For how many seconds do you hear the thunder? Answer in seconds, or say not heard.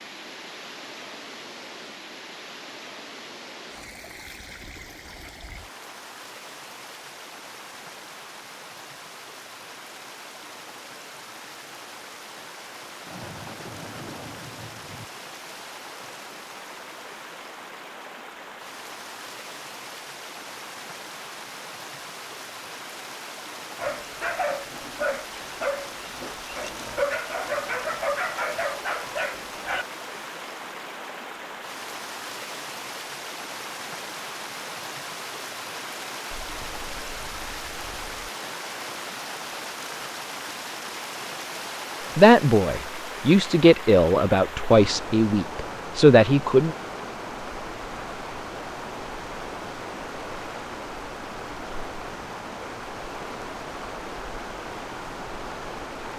4 s.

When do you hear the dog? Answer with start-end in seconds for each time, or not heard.
23.8-29.9.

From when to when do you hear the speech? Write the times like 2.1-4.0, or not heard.
42.1-46.8.